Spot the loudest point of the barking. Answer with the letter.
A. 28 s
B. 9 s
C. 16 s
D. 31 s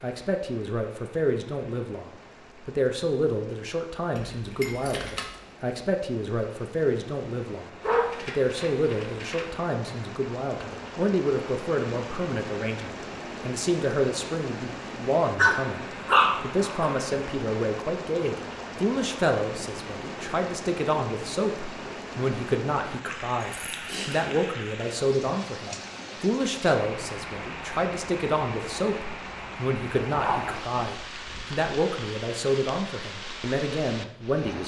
C.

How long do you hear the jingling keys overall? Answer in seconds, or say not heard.
2 s.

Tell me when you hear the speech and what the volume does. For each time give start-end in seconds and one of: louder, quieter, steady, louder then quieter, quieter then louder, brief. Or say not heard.
0.0-34.6 steady.